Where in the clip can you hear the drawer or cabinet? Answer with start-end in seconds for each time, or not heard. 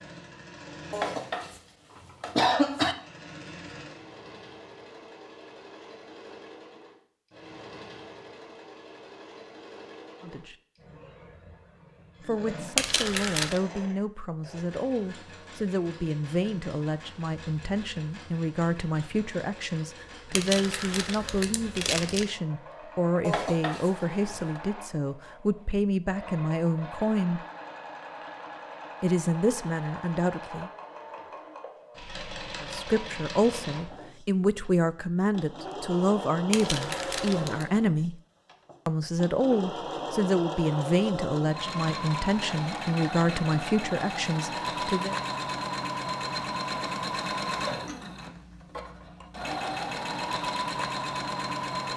not heard.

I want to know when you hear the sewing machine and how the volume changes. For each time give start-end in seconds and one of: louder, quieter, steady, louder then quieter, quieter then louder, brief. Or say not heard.
0.0-51.9 louder.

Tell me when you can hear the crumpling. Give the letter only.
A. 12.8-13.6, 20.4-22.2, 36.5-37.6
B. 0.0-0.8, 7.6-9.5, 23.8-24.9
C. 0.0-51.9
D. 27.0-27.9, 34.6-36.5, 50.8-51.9
A.